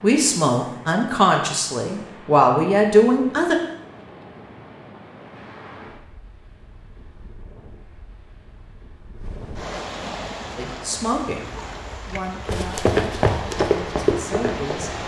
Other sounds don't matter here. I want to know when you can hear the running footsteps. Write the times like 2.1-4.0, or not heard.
12.4-14.9.